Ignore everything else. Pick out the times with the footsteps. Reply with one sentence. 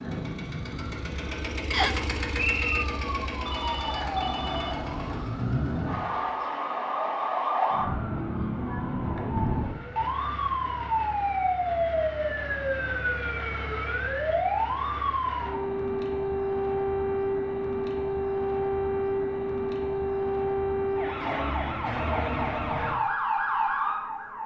The footsteps can't be heard in this clip.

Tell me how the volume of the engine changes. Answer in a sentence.
The volume of the engine goes up, then down.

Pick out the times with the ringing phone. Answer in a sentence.
The ringing phone can be heard from 3.5 to 4.8 s.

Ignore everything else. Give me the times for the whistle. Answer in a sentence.
The whistle can be heard from 1.7 to 2.9 s.